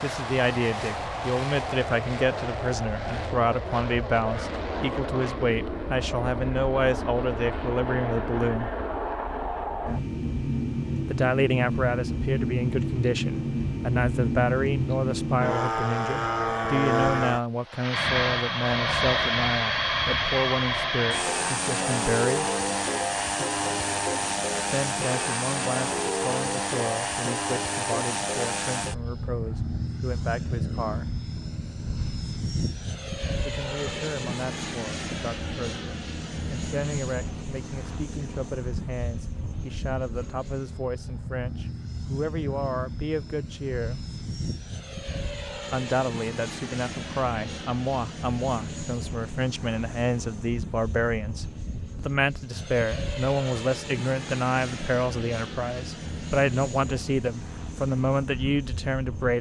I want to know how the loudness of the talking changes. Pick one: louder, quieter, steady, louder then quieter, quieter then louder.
quieter then louder.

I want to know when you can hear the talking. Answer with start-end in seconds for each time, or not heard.
0.0-8.7, 11.1-22.5, 24.7-31.1, 33.4-44.0, 45.7-59.3.